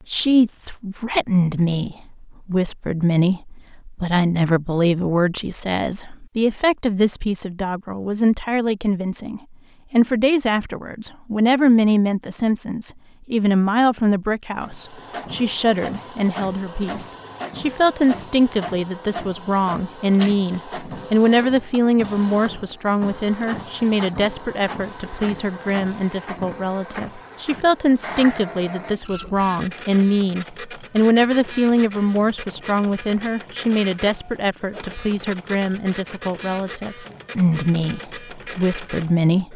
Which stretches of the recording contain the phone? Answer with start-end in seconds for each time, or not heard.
not heard.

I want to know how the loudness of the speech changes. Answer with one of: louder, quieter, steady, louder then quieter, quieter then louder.
steady.